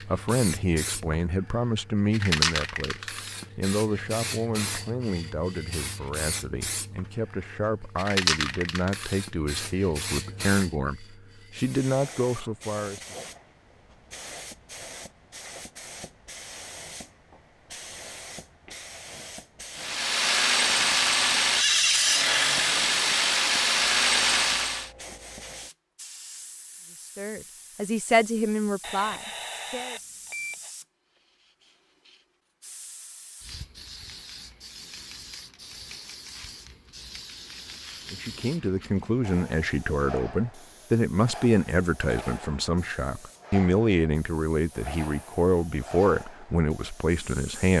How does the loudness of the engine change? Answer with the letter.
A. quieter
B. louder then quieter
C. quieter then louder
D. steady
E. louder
D.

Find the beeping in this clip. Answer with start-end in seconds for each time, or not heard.
28.8-30.7.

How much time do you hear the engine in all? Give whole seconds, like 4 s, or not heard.
5 s.